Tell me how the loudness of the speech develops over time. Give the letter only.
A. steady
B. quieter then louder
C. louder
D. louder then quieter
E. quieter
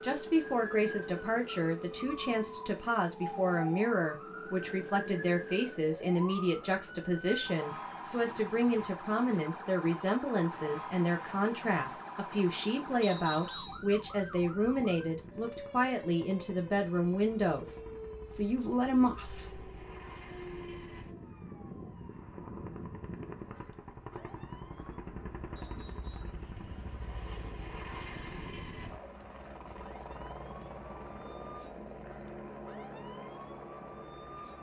A.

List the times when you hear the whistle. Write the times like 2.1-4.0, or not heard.
13.0-13.8, 25.6-26.4.